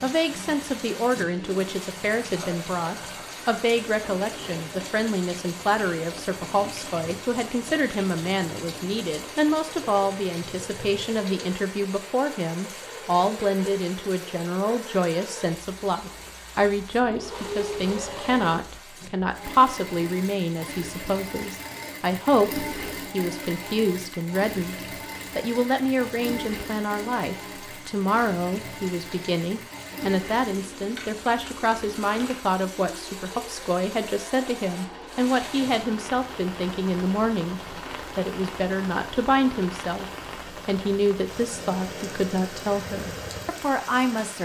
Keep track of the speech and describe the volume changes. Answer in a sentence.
The loudness of the speech stays about the same.